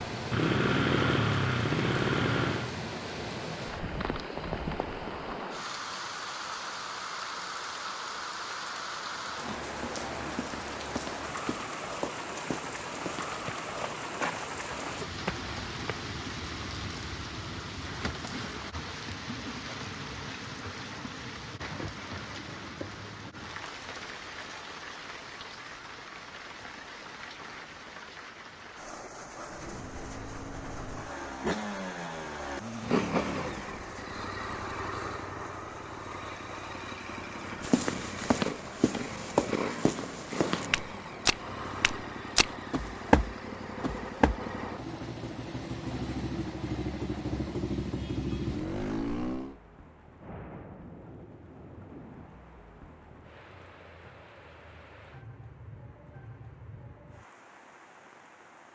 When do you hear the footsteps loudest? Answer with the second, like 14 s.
43 s.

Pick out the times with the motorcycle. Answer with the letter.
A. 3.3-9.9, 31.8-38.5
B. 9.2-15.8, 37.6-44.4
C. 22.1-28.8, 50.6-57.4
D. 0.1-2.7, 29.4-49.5
D.